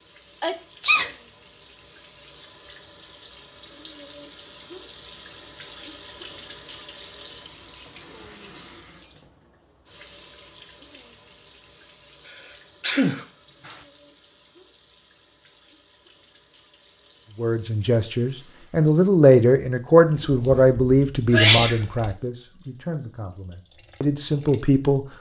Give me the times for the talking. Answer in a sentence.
You can hear the talking from 17.4 to 25.1 s.